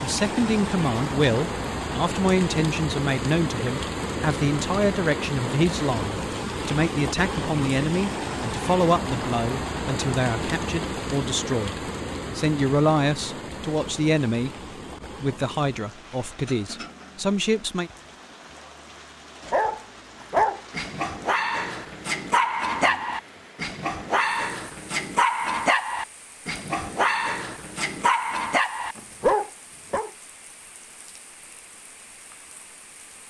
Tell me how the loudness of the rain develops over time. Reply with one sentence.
The volume of the rain goes down.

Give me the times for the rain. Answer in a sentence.
You can hear the rain from 0.0 to 33.2 s.